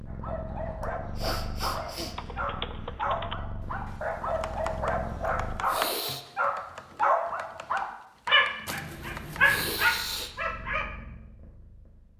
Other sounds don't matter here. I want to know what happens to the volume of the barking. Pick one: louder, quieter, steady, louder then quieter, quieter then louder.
louder.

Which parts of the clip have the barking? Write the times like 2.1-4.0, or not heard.
0.1-10.9.